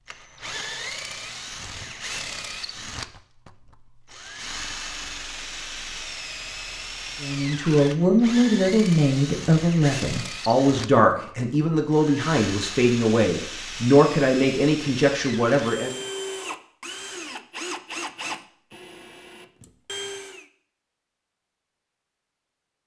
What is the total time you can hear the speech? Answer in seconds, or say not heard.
9 s.